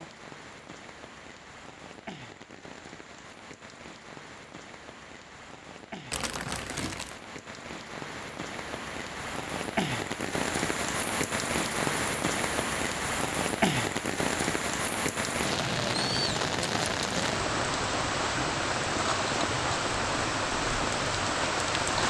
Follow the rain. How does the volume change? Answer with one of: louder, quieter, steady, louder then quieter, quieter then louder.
louder.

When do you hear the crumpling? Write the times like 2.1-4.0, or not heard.
6.1-7.2.